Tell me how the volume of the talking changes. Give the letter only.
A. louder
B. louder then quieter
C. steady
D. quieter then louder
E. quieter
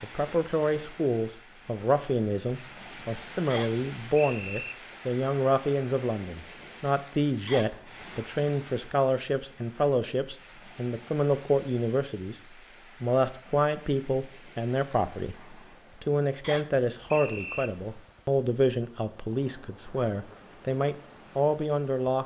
C.